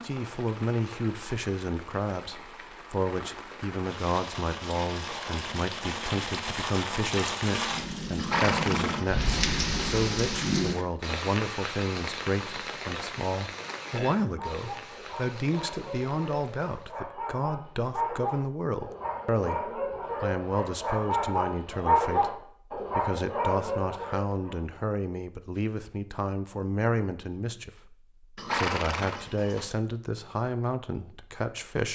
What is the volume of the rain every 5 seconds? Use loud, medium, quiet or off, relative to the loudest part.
medium, loud, loud, quiet, off, off, off.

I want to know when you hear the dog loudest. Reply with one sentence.
The loudest moment of the dog is at 22 seconds.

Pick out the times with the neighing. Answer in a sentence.
You can hear the neighing from 8.2 to 9.2 s and from 28.4 to 29.6 s.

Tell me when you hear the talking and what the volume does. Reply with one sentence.
The talking can be heard from 0.0 to 31.9 s, at a steady volume.